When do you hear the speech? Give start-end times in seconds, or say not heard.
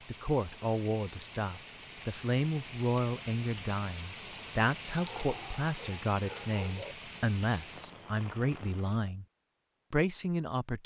0.1-9.2, 9.9-10.8.